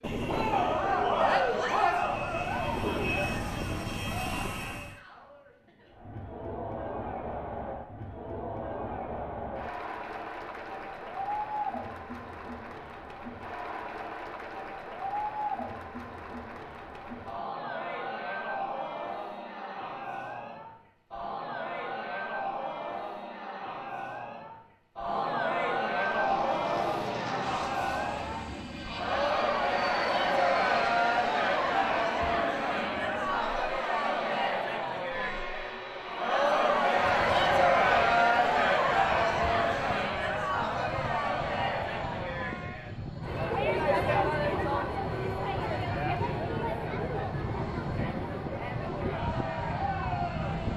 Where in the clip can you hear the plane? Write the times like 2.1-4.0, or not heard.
0.0-5.0, 25.9-50.7.